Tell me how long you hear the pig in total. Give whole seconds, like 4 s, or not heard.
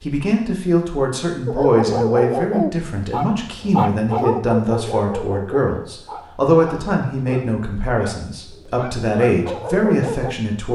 not heard.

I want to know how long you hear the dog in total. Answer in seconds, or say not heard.
9 s.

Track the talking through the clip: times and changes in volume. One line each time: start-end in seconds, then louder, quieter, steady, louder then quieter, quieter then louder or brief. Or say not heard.
0.0-10.7 steady.